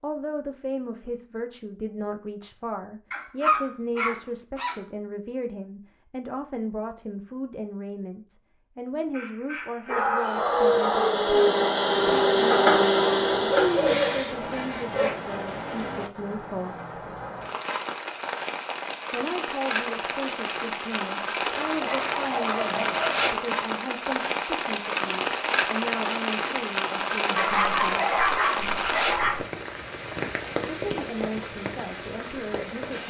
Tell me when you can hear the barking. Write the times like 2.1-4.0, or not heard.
3.1-4.8, 9.1-11.1, 13.5-15.1, 21.6-23.3, 27.4-29.4.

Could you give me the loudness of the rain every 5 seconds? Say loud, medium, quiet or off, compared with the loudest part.
off, off, medium, medium, loud, loud, medium.